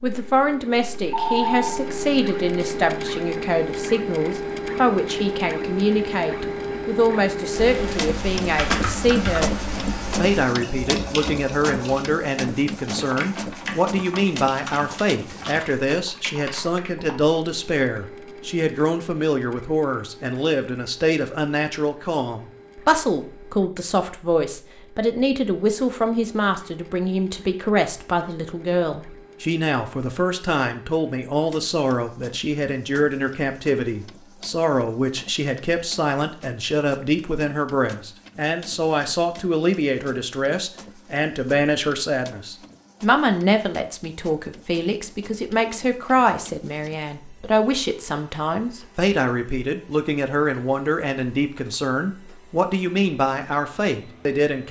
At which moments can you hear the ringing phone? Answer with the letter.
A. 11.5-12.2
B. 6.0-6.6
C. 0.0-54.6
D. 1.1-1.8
D.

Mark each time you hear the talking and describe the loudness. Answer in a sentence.
The talking can be heard from 0.0 to 54.6 s, at a steady volume.